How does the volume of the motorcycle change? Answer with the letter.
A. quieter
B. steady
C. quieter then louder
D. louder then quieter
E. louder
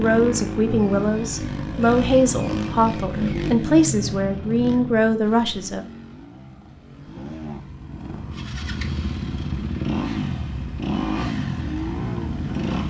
C.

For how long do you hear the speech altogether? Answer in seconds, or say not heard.
6 s.